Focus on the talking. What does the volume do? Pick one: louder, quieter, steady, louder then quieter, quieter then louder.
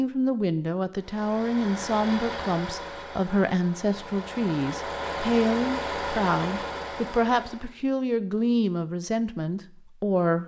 steady.